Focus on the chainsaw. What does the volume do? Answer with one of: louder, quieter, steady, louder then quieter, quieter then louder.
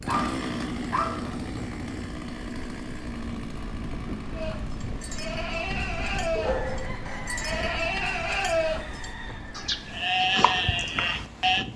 quieter.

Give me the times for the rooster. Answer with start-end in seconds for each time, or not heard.
6.4-10.1.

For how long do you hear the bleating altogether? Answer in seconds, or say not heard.
7 s.